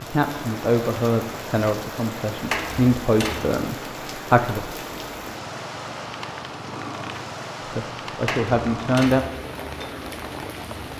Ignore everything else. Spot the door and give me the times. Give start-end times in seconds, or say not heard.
2.5-3.5, 8.2-9.3.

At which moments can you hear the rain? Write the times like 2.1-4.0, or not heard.
0.0-10.9.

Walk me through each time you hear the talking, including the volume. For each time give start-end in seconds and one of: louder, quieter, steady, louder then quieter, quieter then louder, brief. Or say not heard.
0.0-4.8 quieter then louder
7.6-9.2 brief.